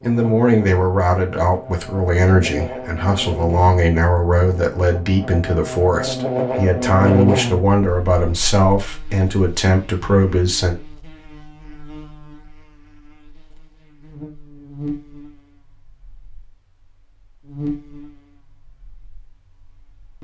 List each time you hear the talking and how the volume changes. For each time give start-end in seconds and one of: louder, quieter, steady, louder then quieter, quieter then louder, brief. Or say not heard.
0.0-10.8 steady.